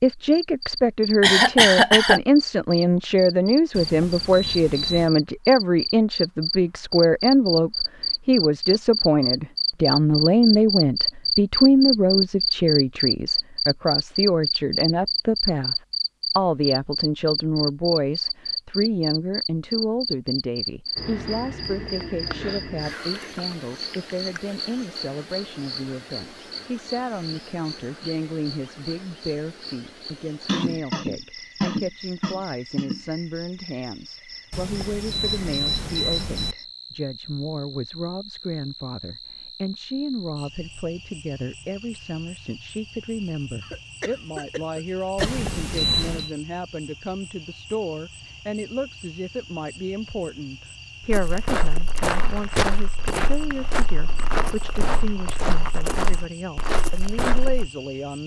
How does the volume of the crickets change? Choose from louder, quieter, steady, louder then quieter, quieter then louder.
quieter.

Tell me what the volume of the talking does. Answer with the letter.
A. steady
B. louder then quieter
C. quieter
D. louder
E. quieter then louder
C.